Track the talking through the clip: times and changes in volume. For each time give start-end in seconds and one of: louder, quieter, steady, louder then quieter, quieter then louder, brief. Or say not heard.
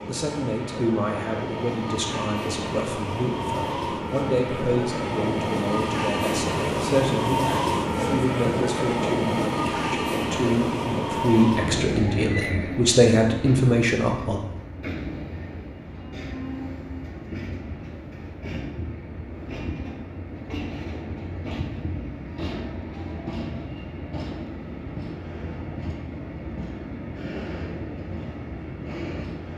0.1-14.4 louder.